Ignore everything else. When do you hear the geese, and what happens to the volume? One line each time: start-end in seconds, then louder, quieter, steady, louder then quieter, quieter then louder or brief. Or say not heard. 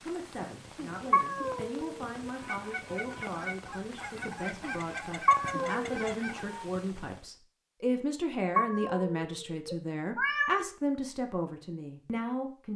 2.4-6.7 steady.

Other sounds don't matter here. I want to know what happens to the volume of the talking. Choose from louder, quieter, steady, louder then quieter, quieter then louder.
louder.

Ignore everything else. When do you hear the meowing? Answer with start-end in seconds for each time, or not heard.
1.1-2.1, 5.2-6.0, 8.6-10.6.